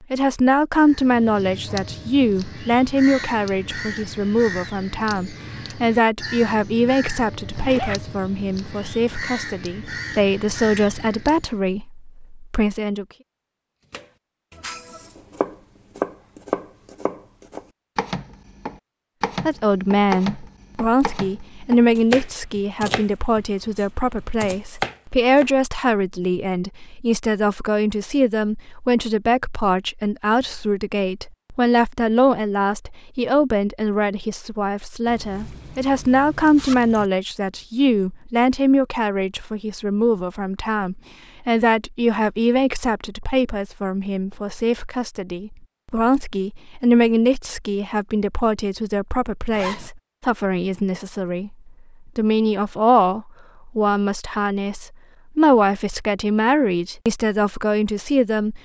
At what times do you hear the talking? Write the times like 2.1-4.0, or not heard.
0.1-13.1, 19.4-58.6.